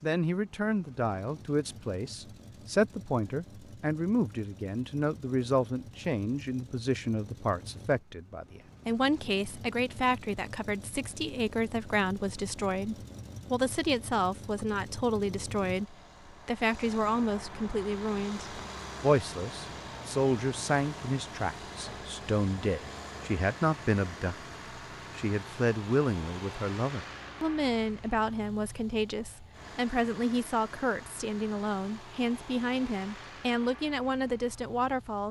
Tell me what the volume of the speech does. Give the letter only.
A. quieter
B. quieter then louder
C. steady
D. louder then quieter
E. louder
C.